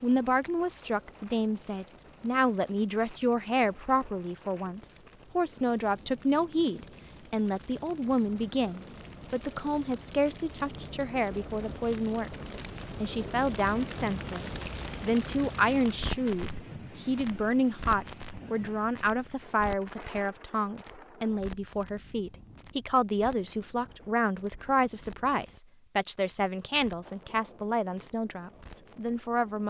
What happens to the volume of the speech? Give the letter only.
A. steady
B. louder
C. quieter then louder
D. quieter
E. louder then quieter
A.